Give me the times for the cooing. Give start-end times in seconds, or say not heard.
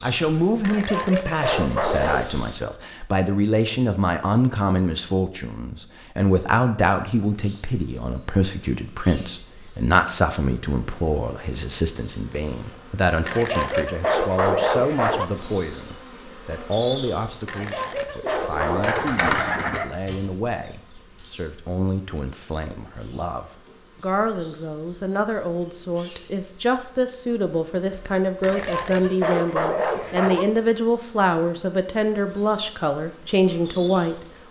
18.2-19.9.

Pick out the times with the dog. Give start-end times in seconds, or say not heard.
0.6-2.3, 13.2-15.2, 17.4-19.4, 28.4-30.4.